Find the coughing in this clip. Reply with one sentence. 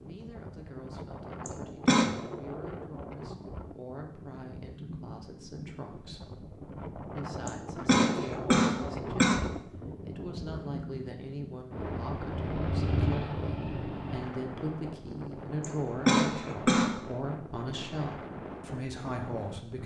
You can hear the coughing from 1.4 to 2.1 s, from 7.5 to 9.4 s and from 15.6 to 16.9 s.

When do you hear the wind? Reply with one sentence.
You can hear the wind from 0.0 to 19.8 s.